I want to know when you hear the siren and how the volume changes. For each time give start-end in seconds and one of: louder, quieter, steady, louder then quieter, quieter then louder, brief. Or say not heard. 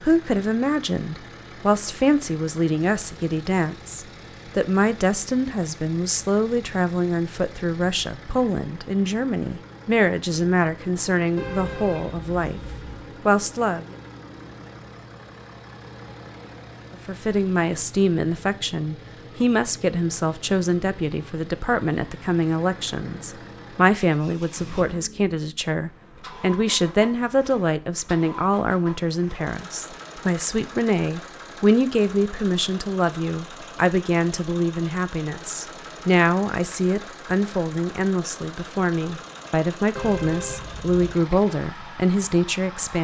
not heard.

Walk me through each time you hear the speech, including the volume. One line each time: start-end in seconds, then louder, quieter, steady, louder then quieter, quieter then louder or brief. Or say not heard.
0.0-12.6 steady
13.2-13.9 brief
16.9-43.0 steady.